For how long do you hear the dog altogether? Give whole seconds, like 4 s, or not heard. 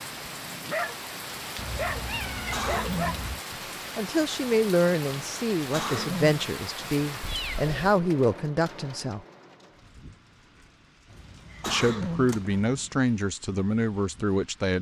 3 s.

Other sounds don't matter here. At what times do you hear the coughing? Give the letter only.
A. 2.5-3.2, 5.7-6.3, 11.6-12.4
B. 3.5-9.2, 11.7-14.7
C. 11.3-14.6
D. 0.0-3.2
A.